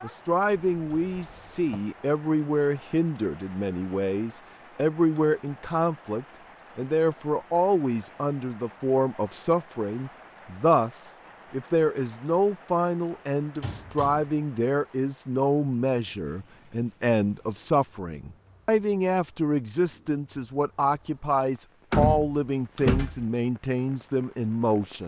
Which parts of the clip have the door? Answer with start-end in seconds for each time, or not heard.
0.7-1.8, 13.6-14.3, 21.9-23.2.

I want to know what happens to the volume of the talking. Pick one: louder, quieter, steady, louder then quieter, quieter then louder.
steady.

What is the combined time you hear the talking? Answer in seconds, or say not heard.
25 s.